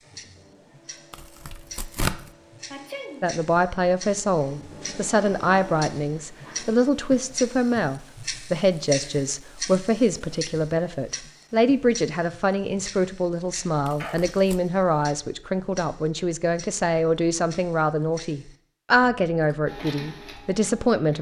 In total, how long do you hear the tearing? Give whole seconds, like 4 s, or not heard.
2 s.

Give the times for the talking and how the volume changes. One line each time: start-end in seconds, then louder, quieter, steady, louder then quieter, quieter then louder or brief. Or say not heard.
3.2-21.1 steady.